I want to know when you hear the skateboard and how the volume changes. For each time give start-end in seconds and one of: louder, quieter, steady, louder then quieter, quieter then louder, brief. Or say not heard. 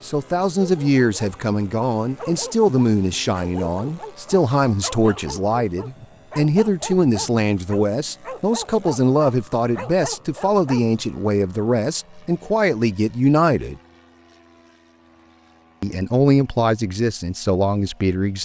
not heard.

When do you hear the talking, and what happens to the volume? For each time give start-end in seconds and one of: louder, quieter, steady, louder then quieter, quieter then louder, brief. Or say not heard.
0.0-13.8 steady
15.8-18.4 brief.